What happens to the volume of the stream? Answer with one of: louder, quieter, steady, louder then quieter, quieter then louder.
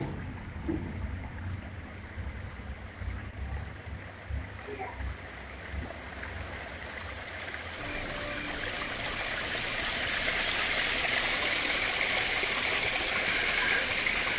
louder.